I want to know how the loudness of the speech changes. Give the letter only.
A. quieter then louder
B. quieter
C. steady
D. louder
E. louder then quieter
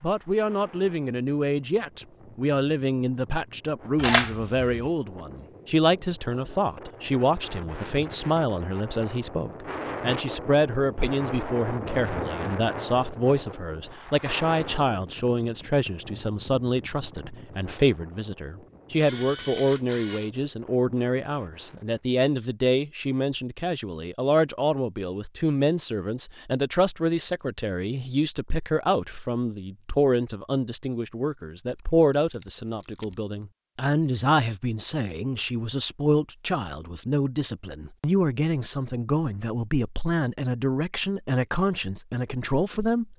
C.